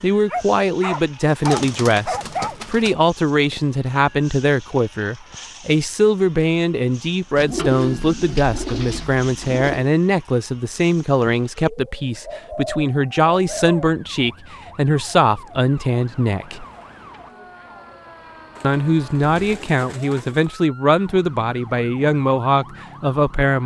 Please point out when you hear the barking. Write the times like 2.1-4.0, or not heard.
0.2-2.5.